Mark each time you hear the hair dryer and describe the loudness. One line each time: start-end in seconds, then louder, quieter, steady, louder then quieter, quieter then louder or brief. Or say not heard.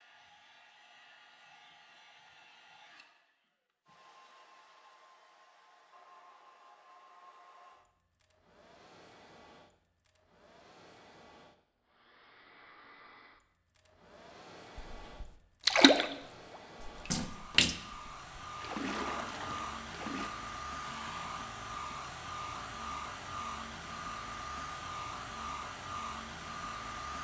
0.0-27.1 louder.